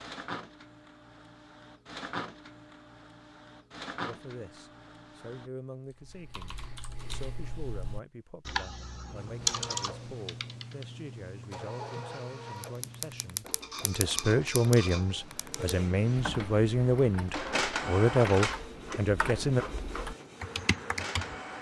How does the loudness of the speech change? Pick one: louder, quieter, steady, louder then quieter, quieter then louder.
louder.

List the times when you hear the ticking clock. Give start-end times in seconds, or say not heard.
not heard.